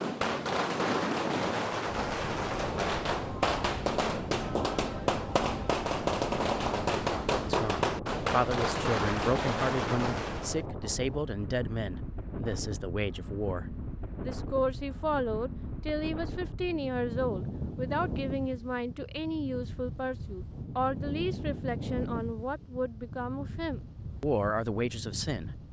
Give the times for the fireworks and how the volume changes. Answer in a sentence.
You can hear the fireworks from 0.0 to 10.6 s, at a steady volume.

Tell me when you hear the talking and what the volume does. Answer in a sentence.
You can hear the talking from 7.5 to 25.6 s, at a steady volume.